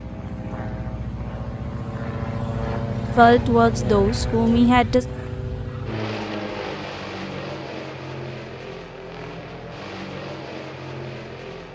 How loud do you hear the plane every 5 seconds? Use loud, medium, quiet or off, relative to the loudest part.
loud, loud, medium.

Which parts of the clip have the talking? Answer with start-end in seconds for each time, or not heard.
3.1-5.0.